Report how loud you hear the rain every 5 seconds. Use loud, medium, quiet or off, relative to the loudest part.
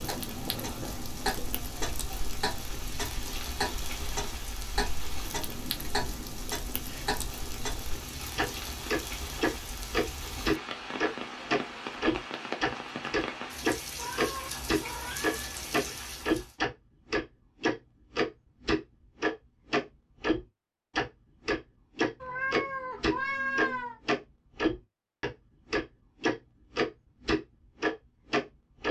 loud, loud, loud, loud, off, off.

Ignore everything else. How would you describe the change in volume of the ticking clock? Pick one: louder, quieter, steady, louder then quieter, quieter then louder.
louder.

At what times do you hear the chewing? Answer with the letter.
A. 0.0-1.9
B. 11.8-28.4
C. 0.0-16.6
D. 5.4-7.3
A.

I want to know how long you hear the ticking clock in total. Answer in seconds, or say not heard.
29 s.